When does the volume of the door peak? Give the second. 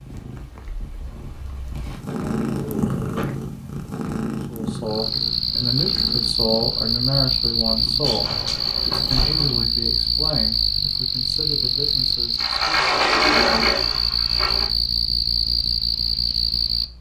13 s.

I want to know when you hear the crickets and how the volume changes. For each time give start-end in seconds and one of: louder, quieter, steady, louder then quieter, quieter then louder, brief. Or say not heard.
4.8-16.9 steady.